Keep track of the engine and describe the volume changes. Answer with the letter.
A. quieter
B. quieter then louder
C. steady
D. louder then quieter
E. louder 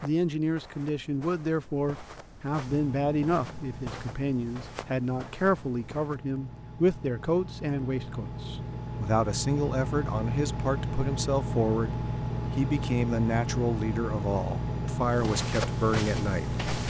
E.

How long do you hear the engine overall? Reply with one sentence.
You can hear the engine for 14 seconds altogether.